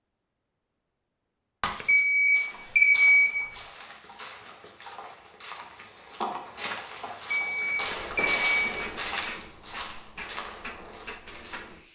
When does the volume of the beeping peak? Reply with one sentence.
The volume of the beeping peaks at 3 seconds.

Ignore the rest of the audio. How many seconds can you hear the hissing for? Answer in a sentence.
The hissing can be heard for 4 seconds in total.